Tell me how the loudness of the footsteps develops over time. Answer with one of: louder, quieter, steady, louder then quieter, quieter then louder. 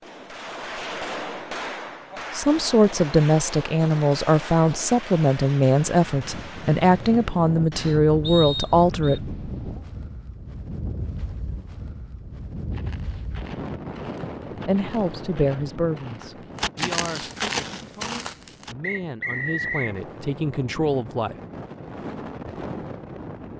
louder.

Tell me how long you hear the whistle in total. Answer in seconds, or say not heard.
2 s.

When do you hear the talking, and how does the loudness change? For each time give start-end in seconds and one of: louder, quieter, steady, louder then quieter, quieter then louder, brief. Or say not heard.
2.4-9.2 steady
14.6-21.4 quieter then louder.